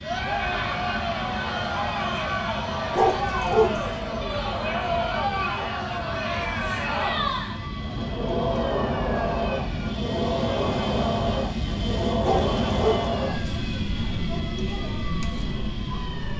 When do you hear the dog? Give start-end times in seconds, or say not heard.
3.0-3.8, 12.2-13.1.